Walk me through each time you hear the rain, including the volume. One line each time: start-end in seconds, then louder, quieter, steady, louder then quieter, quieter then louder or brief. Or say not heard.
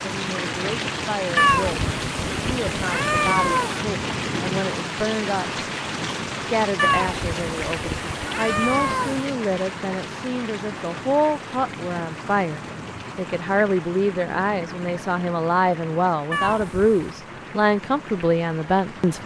0.0-19.2 quieter.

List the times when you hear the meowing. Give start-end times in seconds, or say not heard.
1.4-3.9, 6.8-9.2, 16.3-17.1.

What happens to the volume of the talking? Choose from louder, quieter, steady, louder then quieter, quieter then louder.
louder.